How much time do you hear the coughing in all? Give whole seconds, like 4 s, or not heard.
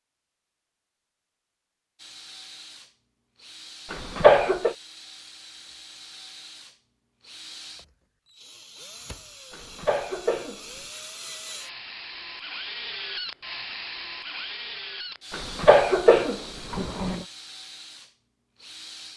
4 s.